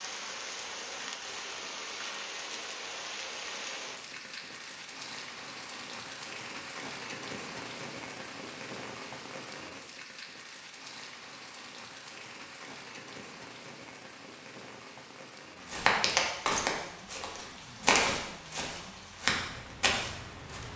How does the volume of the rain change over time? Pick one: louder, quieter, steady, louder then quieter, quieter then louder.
quieter.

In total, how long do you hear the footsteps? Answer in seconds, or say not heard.
5 s.